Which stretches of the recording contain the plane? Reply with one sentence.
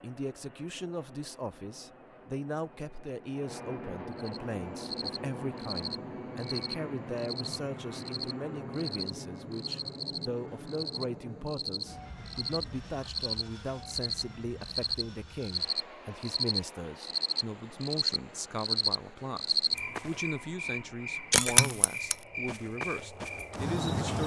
The plane can be heard from 0.0 to 21.4 s.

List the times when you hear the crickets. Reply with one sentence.
The crickets can be heard from 4.2 to 24.2 s.